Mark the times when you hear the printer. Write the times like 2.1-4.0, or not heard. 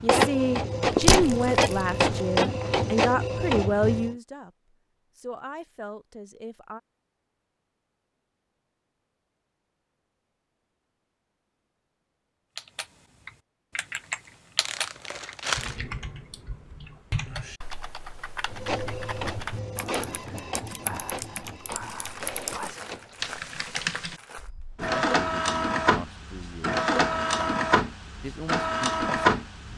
0.0-4.2, 18.4-23.2, 24.8-29.7.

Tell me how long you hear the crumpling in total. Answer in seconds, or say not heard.
5 s.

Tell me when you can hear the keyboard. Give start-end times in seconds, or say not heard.
12.6-24.9.